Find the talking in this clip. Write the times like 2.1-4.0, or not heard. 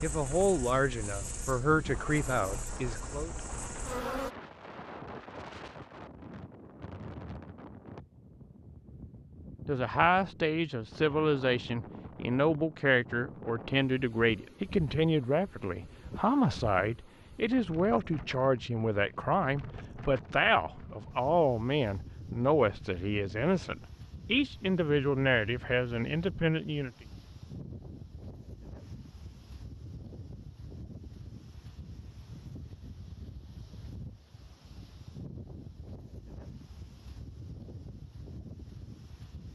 0.0-3.3, 9.7-26.9.